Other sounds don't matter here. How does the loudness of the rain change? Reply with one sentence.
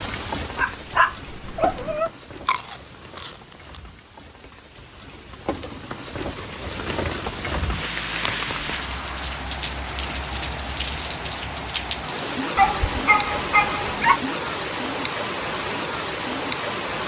The loudness of the rain goes up.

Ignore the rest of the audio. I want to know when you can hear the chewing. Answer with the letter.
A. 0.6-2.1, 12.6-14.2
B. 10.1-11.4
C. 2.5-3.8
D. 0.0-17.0
C.